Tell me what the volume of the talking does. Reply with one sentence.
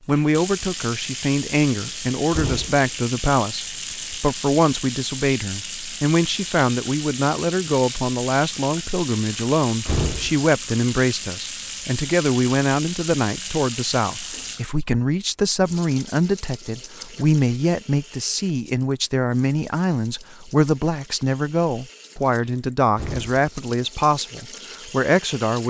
The volume of the talking stays about the same.